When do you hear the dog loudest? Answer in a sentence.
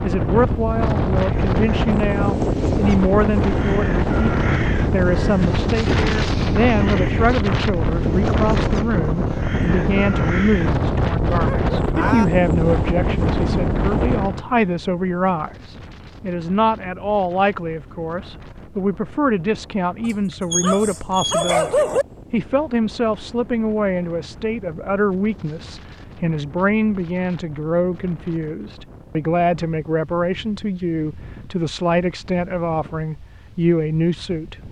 The volume of the dog peaks at 22 seconds.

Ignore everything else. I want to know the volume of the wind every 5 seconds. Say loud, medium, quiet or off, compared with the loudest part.
loud, loud, loud, quiet, quiet, quiet, quiet.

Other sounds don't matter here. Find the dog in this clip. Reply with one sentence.
The dog can be heard from 11.3 to 12.2 s and from 20.0 to 22.1 s.